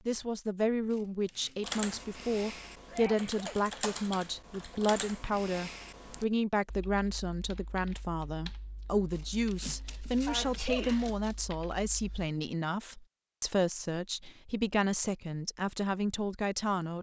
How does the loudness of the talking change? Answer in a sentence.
The loudness of the talking stays about the same.